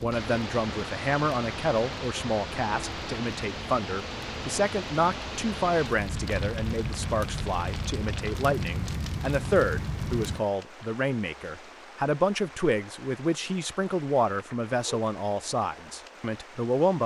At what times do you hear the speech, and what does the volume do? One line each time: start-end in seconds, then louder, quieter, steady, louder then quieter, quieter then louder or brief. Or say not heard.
0.0-17.0 steady.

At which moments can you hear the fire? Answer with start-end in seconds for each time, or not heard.
0.0-10.4.